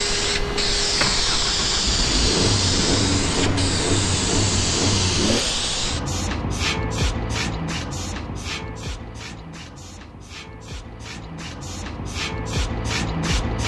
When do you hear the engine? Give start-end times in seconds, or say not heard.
0.0-5.6.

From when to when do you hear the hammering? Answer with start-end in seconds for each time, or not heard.
not heard.